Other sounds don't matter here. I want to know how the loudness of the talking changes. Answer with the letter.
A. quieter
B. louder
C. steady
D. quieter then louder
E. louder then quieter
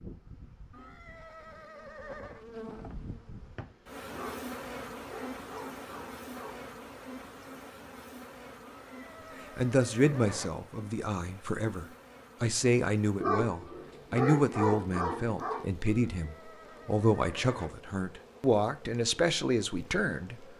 C.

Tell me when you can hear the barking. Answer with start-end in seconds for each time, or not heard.
4.1-6.7, 13.2-15.7.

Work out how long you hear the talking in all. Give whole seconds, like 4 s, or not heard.
11 s.